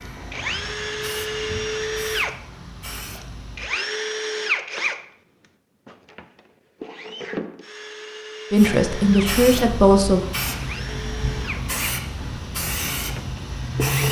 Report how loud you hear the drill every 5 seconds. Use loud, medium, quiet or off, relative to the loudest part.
loud, medium, medium.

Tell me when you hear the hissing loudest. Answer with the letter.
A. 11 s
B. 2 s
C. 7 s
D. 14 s
D.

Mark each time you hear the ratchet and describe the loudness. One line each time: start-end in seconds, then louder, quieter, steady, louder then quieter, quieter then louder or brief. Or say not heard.
not heard.